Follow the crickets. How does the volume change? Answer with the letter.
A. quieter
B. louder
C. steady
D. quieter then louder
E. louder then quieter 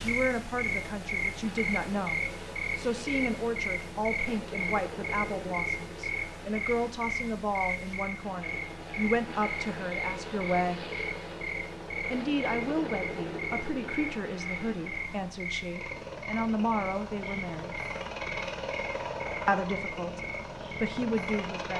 A.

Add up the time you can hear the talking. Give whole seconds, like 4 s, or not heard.
19 s.